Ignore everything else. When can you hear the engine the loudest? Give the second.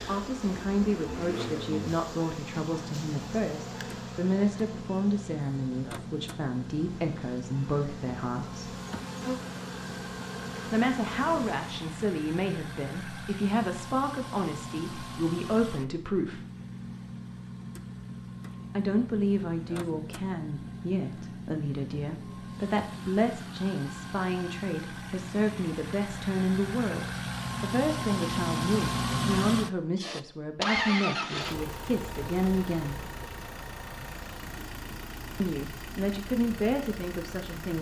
29 s.